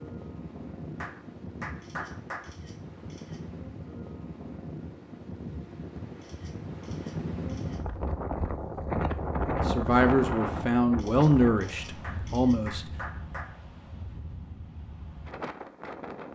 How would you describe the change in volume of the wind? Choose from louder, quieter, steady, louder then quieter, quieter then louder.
louder then quieter.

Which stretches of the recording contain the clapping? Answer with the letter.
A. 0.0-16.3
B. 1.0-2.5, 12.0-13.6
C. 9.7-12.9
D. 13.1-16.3
B.